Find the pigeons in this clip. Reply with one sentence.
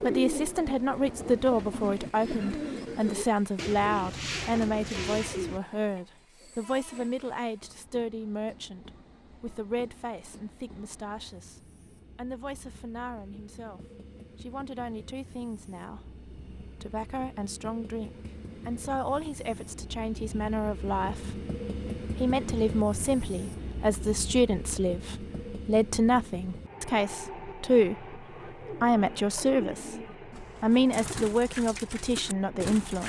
You can hear the pigeons from 0.0 to 6.0 s and from 28.1 to 33.0 s.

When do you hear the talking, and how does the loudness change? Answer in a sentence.
You can hear the talking from 0.0 to 29.9 s, getting quieter then louder; and briefly from 30.6 to 33.0 s.